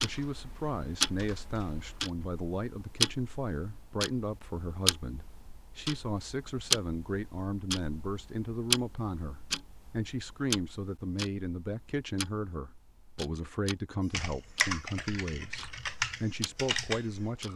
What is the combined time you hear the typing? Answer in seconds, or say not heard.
6 s.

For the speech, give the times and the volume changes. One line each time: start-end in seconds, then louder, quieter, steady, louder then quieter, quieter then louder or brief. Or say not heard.
0.0-17.5 steady.